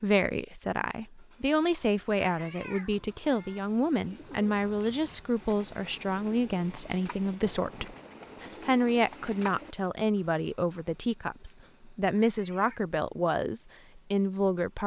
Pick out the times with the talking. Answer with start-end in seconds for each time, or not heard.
0.0-14.8.